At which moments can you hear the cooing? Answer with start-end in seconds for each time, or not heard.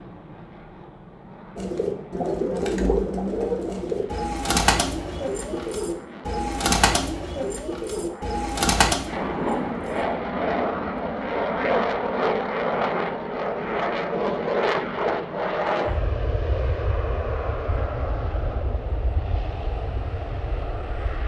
1.6-10.1.